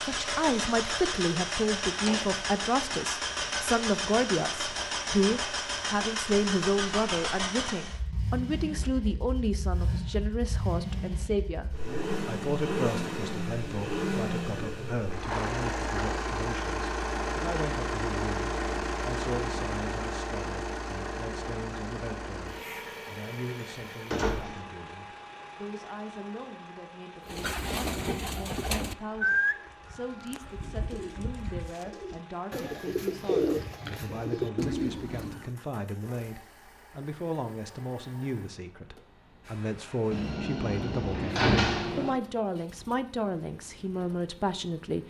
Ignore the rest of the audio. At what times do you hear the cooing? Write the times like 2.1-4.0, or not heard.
27.2-35.5.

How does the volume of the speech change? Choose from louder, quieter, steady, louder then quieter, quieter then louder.
quieter then louder.